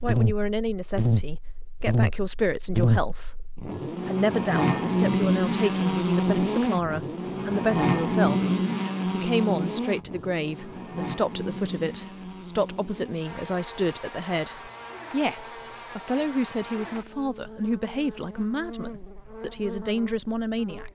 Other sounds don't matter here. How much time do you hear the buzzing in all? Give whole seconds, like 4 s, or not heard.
21 s.